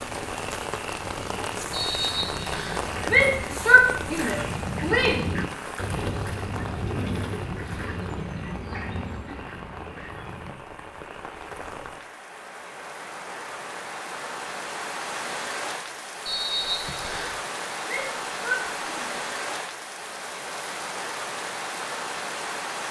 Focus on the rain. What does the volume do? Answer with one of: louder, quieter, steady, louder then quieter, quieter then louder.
quieter then louder.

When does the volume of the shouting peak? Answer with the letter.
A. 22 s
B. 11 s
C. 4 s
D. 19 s
C.